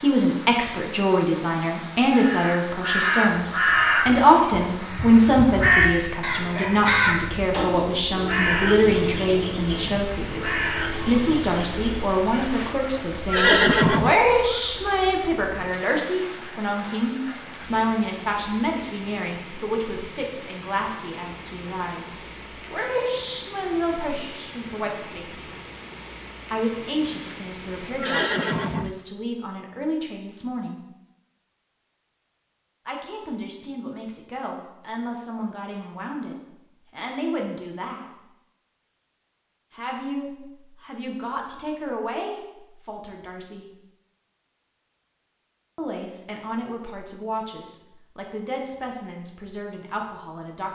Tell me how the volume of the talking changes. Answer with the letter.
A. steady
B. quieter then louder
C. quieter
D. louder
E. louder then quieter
C.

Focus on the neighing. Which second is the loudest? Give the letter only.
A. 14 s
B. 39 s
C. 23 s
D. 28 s
A.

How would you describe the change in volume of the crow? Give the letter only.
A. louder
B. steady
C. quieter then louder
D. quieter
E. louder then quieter
D.